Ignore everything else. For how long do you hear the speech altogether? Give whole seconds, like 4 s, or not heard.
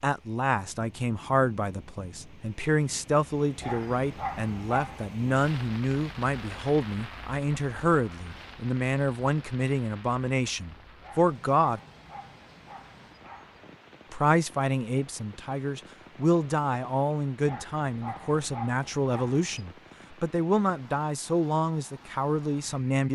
21 s.